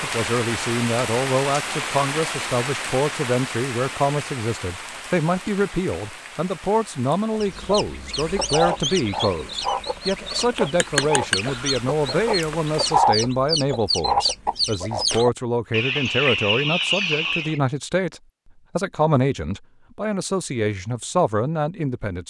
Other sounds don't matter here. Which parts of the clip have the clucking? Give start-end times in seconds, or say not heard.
7.3-17.6.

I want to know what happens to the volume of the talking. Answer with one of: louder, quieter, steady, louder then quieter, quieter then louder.
steady.